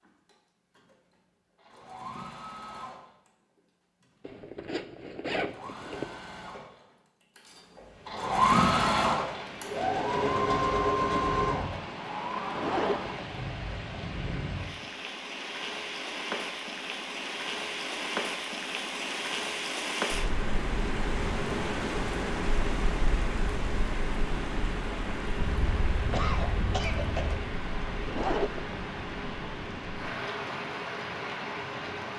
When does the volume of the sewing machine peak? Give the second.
9 s.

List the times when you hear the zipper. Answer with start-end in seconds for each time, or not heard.
4.2-6.2, 12.6-13.2, 28.1-28.7.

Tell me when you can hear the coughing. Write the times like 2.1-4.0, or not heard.
25.4-27.4.